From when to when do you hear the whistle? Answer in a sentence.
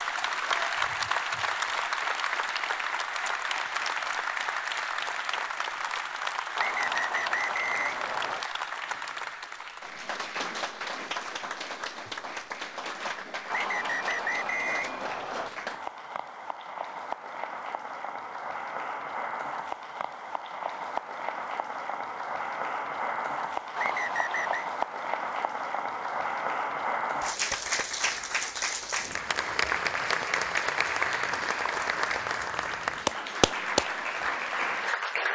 The whistle can be heard from 6.5 to 8.5 s, from 13.5 to 15.5 s and from 23.8 to 24.6 s.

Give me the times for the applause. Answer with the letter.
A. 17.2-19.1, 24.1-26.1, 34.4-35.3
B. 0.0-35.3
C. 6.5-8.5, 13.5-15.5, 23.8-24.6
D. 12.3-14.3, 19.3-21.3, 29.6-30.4
B.